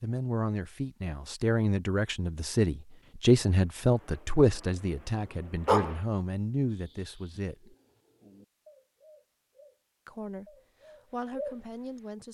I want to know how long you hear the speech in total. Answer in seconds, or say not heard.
10 s.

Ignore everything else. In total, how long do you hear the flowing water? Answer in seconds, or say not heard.
not heard.